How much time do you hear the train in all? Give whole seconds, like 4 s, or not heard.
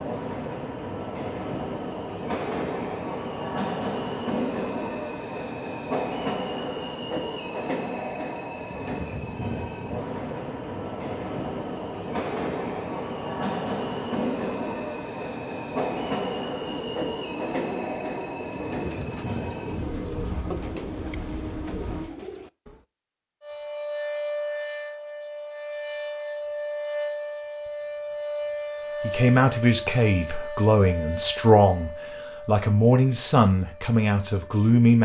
22 s.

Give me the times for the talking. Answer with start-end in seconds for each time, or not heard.
29.0-35.0.